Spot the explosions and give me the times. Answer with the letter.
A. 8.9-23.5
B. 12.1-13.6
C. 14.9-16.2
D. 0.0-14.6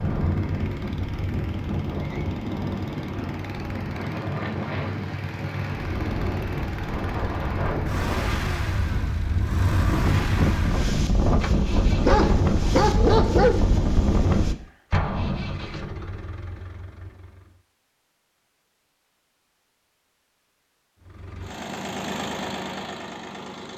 C.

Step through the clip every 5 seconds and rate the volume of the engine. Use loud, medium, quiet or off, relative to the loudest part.
loud, loud, loud, medium, loud.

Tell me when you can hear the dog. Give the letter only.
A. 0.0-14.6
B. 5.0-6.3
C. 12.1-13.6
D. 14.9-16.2
C.